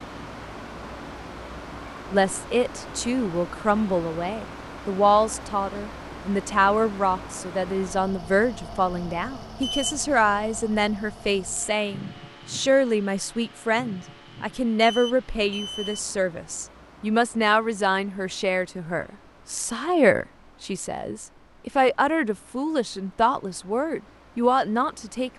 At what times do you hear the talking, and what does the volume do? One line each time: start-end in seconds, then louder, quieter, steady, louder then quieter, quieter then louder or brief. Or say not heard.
2.1-25.3 steady.